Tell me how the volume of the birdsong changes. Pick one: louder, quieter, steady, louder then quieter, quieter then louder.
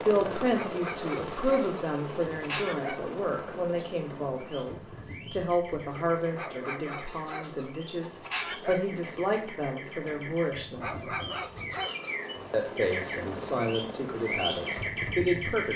louder.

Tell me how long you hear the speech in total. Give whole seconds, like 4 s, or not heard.
14 s.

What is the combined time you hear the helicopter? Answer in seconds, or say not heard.
16 s.